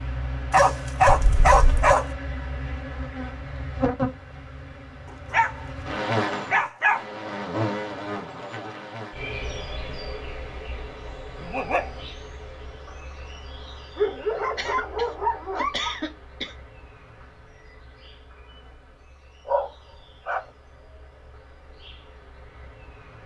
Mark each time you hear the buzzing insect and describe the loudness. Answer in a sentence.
The buzzing insect can be heard from 0.0 to 23.2 s, getting quieter.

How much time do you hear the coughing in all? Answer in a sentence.
You can hear the coughing for 3 seconds altogether.